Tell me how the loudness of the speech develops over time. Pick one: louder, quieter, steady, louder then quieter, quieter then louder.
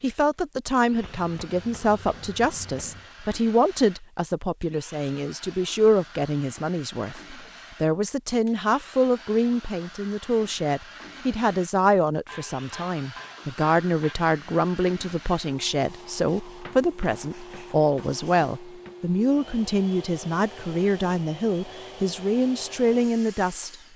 steady.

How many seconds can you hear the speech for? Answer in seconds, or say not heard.
24 s.